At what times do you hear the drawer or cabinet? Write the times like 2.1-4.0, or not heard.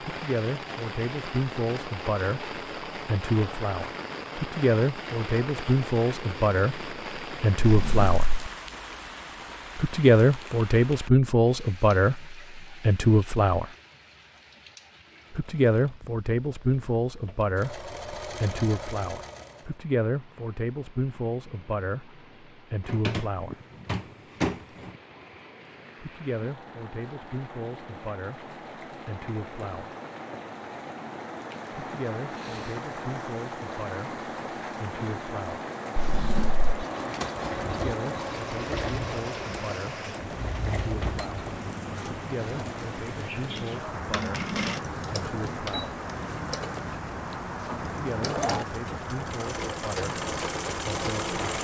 7.6-8.5, 22.9-24.9, 36.0-36.7.